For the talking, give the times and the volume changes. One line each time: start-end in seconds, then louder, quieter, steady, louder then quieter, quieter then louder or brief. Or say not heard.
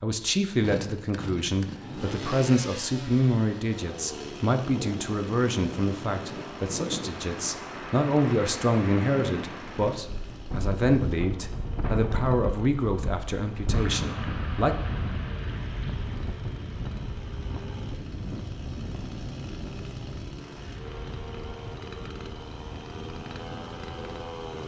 0.0-14.8 steady.